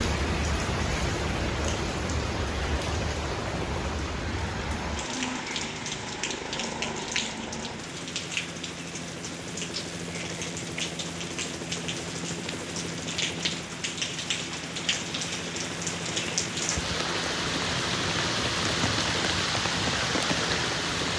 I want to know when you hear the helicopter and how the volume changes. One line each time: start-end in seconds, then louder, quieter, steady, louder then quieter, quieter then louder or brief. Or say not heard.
0.0-21.1 steady.